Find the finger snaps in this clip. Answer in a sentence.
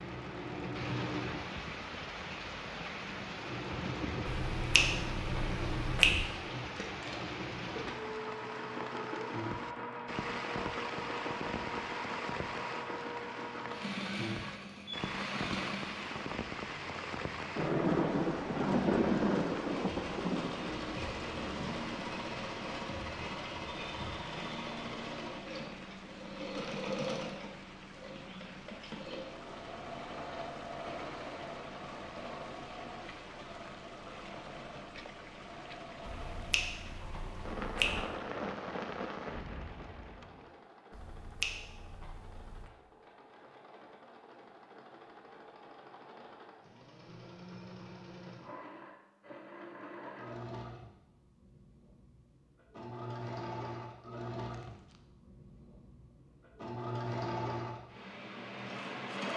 The finger snaps can be heard from 4.5 to 6.2 s, from 36.0 to 38.0 s and from 40.9 to 42.7 s.